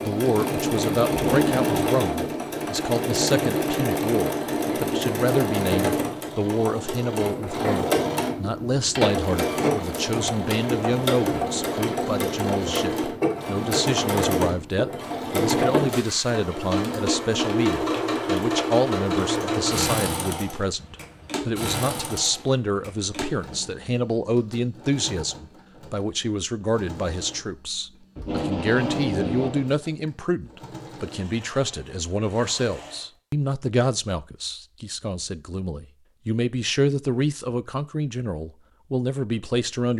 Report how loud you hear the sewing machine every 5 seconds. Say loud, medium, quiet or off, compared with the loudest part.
loud, loud, loud, loud, medium, quiet, quiet, off.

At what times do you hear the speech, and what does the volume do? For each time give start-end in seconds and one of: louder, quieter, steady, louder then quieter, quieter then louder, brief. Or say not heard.
0.0-39.9 steady.